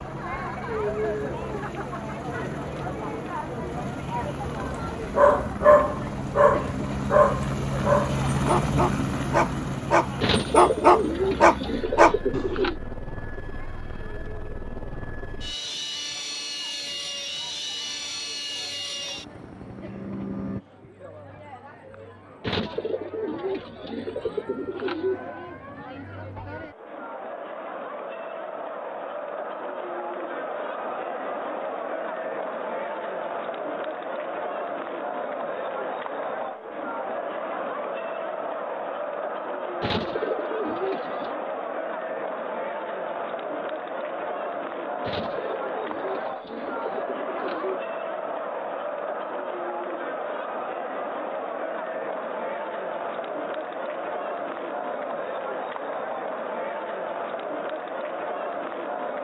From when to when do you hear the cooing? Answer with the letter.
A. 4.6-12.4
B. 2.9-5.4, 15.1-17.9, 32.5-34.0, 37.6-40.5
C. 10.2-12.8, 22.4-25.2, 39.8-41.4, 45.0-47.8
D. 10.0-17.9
C.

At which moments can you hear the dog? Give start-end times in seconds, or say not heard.
4.6-12.4.